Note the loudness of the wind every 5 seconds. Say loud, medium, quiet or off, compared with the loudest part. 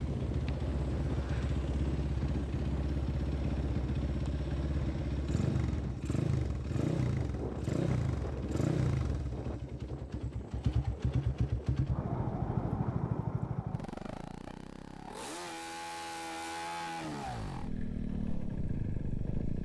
loud, loud, medium, off.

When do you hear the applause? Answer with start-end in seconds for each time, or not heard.
not heard.